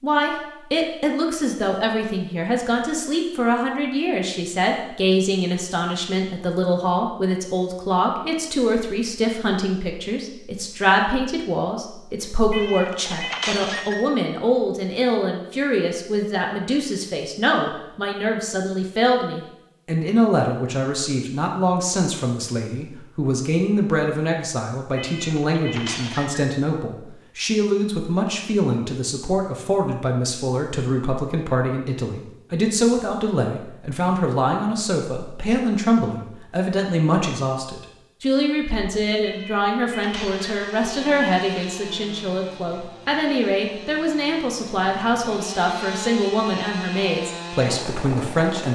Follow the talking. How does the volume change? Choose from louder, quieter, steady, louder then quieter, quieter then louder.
steady.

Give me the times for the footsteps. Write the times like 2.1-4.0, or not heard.
not heard.